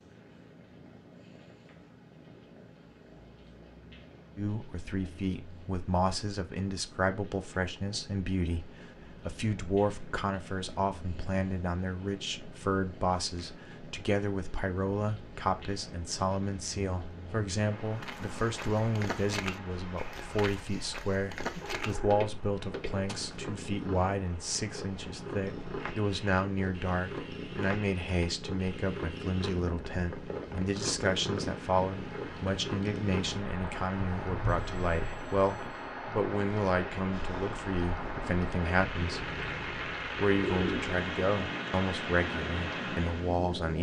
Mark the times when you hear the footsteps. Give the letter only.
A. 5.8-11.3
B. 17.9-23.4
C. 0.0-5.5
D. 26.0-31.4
B.